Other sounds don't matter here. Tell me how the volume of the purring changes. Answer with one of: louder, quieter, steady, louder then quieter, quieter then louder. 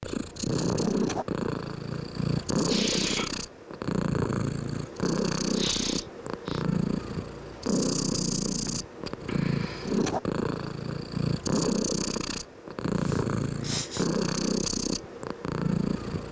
steady.